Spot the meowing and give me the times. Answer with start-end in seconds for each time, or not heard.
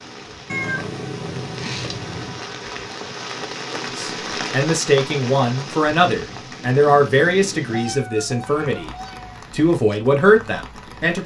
0.5-2.5, 7.7-9.4.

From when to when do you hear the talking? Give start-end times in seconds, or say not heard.
3.7-8.9, 9.5-11.2.